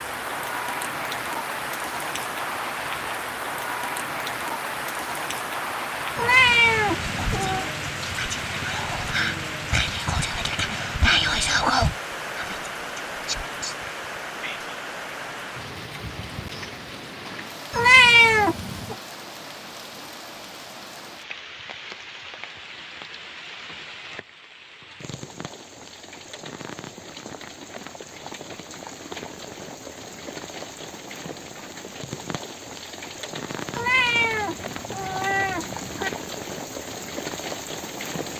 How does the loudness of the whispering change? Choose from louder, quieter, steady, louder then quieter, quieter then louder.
louder then quieter.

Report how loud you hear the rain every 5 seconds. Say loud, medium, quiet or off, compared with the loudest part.
loud, loud, loud, medium, medium, medium, medium, loud.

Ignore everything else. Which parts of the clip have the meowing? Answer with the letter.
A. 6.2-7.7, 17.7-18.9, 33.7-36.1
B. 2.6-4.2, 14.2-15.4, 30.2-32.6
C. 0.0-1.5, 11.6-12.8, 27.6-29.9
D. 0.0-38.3
A.